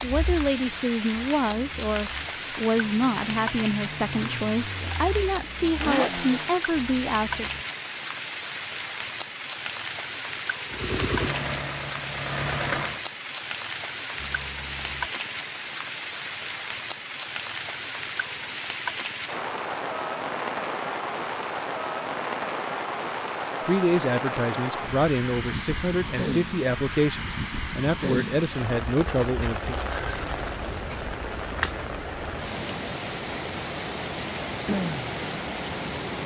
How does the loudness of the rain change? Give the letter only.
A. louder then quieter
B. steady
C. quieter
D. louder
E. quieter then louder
B.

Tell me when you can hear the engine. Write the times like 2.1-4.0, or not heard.
0.0-6.6, 10.7-13.0.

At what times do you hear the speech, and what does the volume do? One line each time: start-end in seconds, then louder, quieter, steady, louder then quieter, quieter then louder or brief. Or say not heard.
0.0-7.5 steady
23.6-29.8 steady.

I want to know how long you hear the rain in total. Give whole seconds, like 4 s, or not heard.
36 s.